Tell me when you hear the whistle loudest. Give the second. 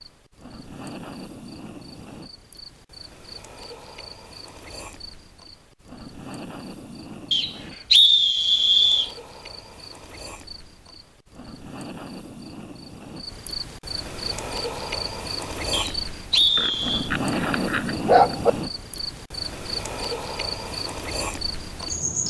8 s.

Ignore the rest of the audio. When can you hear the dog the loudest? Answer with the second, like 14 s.
18 s.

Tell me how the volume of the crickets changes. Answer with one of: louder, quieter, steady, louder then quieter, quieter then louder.
louder.